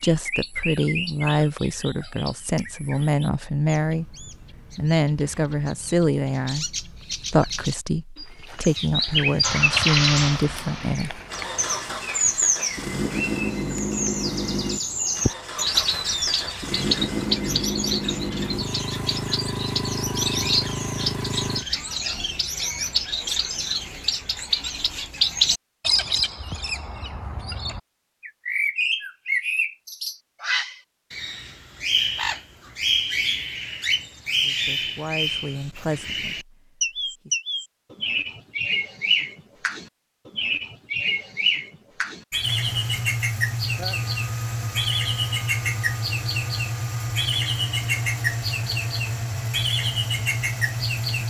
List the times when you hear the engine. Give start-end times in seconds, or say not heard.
9.4-21.6, 42.4-51.2.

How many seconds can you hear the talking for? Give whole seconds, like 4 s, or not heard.
14 s.